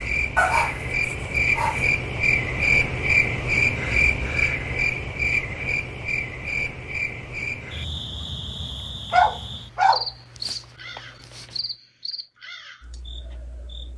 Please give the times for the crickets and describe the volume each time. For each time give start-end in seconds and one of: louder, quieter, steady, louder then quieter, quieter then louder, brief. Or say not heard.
0.0-13.9 quieter.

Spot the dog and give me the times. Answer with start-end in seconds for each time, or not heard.
0.3-1.8, 9.1-11.4.